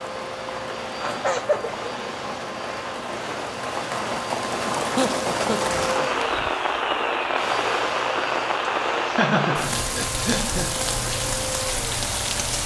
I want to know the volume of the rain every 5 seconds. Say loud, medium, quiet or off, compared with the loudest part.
medium, loud, loud.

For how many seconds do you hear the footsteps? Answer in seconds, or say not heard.
not heard.